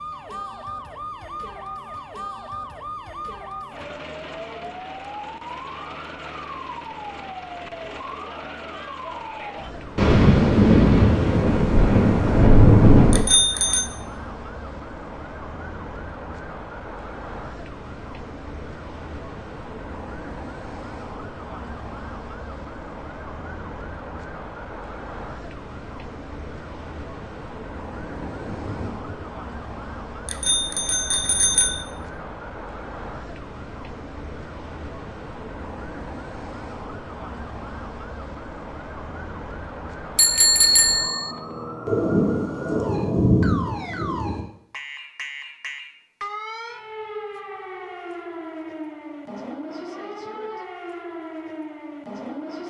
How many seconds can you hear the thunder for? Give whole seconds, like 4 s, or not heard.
7 s.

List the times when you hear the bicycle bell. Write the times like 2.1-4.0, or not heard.
13.1-13.8, 30.2-31.9, 40.1-41.4.